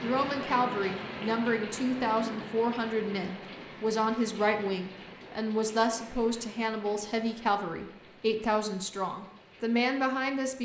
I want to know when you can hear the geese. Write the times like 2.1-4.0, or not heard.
not heard.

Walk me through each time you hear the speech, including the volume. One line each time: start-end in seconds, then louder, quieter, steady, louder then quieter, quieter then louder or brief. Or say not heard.
0.0-10.6 steady.